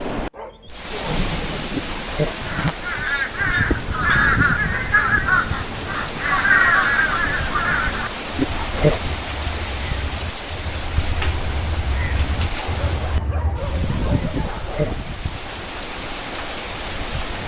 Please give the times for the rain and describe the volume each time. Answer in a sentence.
You can hear the rain from 0.0 to 17.4 s, at a steady volume.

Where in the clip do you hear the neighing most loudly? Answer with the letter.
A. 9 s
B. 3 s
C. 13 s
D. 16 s
A.